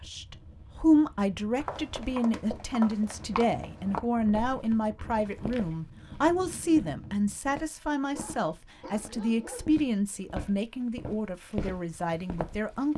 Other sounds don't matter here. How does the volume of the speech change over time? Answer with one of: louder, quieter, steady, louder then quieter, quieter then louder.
quieter.